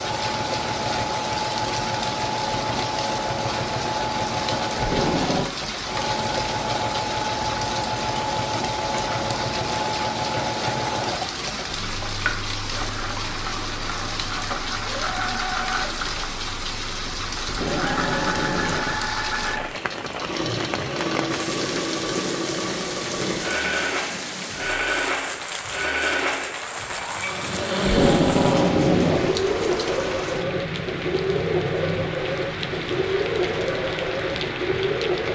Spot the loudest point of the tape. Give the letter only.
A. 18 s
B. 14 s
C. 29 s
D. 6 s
C.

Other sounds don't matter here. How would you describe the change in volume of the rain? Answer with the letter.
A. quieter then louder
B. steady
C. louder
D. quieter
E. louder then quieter
B.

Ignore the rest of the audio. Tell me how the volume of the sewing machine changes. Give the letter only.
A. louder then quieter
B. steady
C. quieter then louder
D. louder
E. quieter
B.